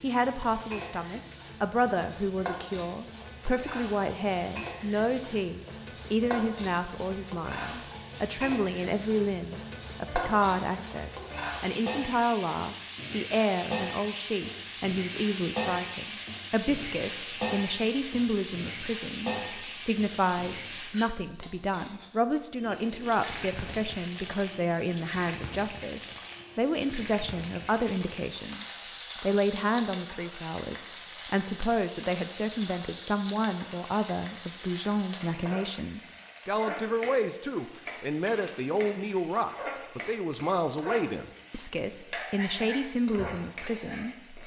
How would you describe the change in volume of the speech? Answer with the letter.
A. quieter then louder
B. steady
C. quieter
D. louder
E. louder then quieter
B.